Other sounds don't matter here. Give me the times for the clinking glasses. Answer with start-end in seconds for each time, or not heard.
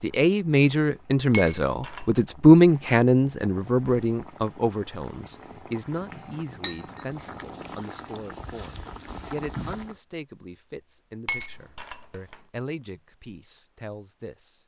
1.3-2.1, 6.6-7.8, 11.2-12.4.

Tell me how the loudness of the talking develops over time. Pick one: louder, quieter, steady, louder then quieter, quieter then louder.
quieter.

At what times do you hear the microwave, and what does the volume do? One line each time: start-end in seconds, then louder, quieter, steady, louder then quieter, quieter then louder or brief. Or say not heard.
not heard.